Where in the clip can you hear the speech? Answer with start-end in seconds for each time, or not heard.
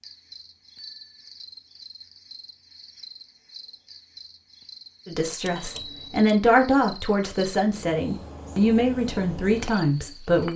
5.0-10.5.